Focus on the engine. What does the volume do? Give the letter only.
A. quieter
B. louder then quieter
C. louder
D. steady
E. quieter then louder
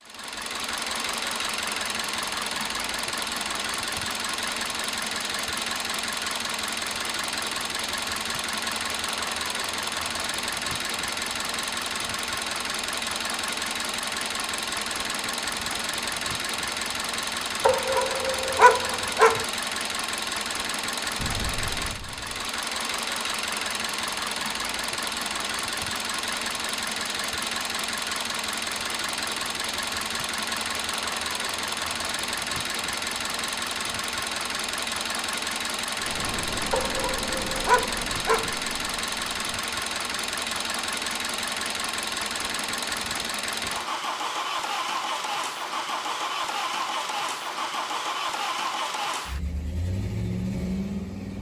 D.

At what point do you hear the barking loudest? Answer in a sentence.
The volume of the barking peaks at 19 seconds.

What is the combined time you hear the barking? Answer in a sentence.
You can hear the barking for 4 seconds altogether.